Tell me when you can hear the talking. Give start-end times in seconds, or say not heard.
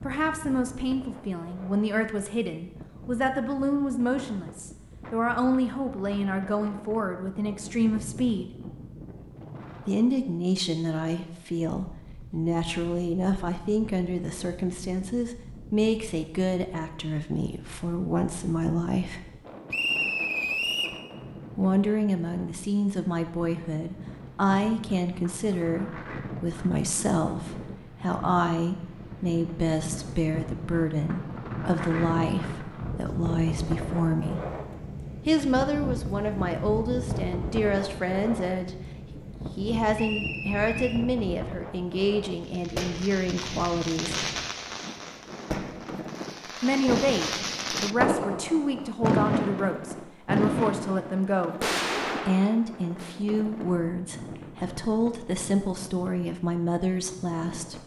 0.0-8.5, 9.8-19.2, 21.6-34.4, 35.2-44.3, 46.6-57.8.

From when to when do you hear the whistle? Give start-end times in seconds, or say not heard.
19.7-21.0, 40.0-41.0.